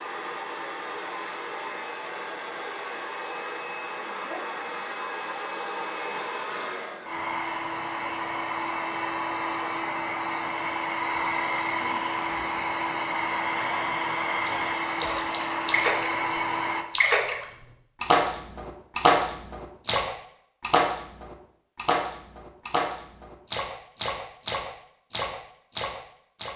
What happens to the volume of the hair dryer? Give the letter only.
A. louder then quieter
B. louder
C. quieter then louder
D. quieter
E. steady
B.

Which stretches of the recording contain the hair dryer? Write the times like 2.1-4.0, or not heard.
0.0-16.9.